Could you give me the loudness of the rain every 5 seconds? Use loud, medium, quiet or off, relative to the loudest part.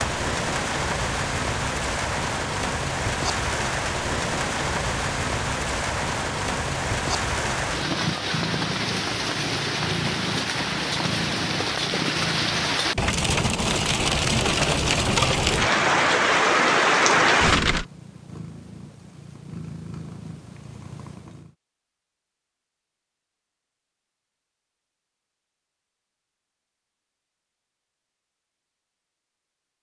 medium, medium, medium, loud, off, off.